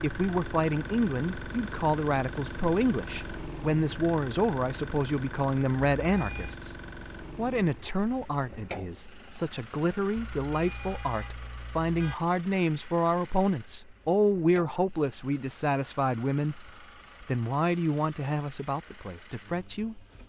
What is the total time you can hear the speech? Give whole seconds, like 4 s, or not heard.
20 s.